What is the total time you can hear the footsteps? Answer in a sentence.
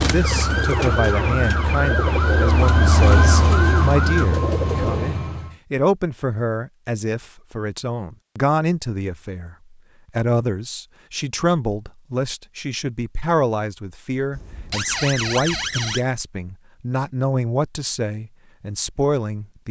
You can't hear the footsteps here.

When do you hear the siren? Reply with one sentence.
The siren can be heard from 0.0 to 4.2 s and from 14.3 to 16.1 s.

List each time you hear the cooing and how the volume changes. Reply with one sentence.
You can hear the cooing from 0.0 to 5.2 s, at a steady volume.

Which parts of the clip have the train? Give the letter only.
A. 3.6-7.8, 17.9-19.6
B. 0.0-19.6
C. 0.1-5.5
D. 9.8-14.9
C.